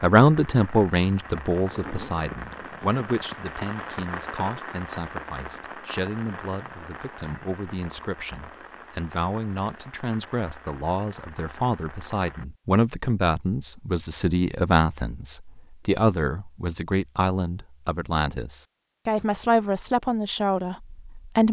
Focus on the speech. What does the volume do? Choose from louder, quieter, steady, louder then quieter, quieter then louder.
quieter then louder.